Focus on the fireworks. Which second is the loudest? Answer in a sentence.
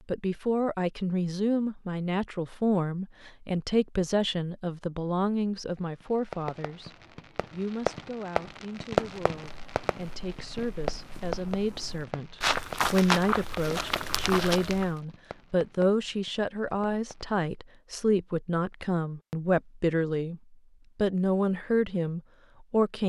The volume of the fireworks peaks at 9 seconds.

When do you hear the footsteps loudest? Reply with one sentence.
The loudest moment of the footsteps is at 13 seconds.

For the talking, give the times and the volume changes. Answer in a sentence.
The talking can be heard from 0.1 to 6.9 s, at a steady volume; and from 7.5 to 23.0 s, getting louder.